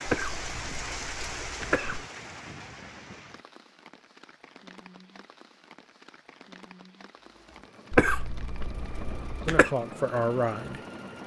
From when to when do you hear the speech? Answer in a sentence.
The speech can be heard from 9.4 to 10.8 s.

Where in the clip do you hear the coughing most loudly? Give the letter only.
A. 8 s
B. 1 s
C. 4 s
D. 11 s
A.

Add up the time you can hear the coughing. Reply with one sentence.
The coughing can be heard for 4 seconds in total.